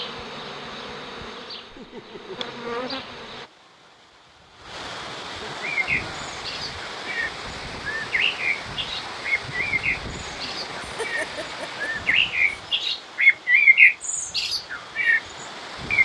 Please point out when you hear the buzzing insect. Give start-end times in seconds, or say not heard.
0.0-3.5.